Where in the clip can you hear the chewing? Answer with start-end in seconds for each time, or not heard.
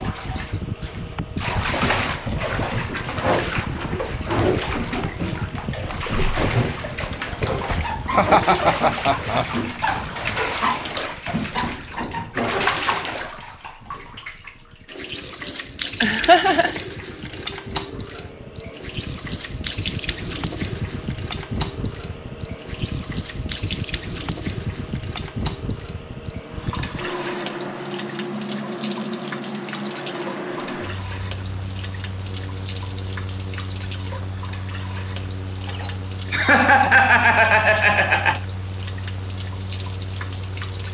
not heard.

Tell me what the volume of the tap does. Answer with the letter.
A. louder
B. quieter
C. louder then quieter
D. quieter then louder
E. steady
B.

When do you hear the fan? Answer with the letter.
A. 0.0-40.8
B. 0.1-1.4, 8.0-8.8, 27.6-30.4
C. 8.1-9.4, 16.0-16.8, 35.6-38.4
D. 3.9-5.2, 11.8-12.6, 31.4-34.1
A.